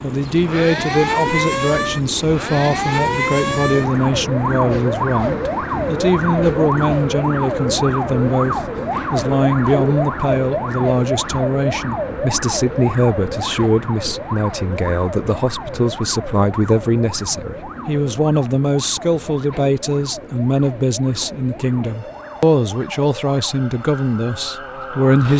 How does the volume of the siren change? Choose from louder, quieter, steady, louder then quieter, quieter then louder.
quieter.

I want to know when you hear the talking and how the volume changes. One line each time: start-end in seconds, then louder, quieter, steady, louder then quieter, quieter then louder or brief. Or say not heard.
0.0-25.3 steady.